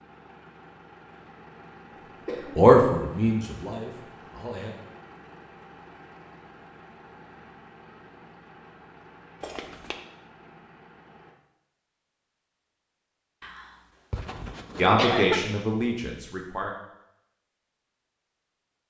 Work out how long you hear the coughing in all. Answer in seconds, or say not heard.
3 s.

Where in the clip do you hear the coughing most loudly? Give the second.
15 s.